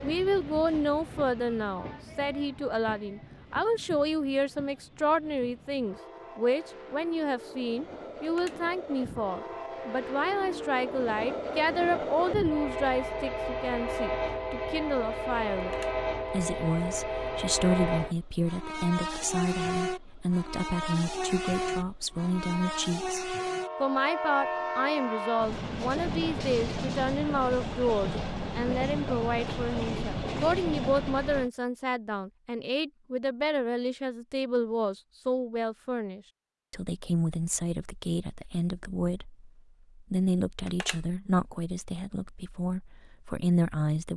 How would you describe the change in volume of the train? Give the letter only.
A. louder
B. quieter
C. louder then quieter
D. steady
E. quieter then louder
A.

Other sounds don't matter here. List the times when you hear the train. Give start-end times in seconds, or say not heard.
0.0-31.5.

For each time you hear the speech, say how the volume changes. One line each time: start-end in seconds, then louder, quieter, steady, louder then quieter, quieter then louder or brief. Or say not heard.
0.0-44.1 steady.